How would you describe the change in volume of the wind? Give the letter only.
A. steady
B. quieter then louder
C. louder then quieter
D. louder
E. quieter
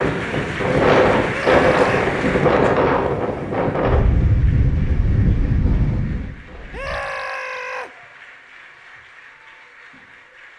E.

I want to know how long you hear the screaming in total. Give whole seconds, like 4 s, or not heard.
2 s.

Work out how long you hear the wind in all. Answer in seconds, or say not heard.
7 s.